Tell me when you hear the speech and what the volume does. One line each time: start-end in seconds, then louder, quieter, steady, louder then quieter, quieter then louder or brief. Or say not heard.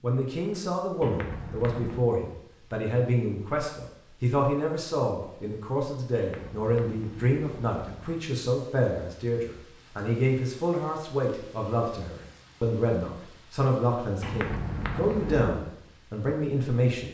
0.0-17.0 steady.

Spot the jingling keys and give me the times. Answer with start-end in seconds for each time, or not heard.
1.0-2.0, 6.2-8.2, 14.2-15.6.